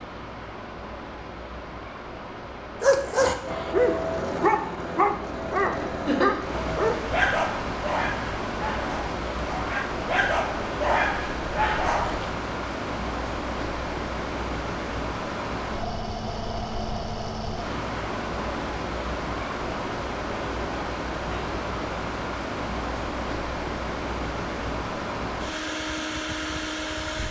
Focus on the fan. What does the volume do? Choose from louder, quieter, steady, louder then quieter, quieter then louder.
louder.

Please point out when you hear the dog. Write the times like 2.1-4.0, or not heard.
2.8-12.3.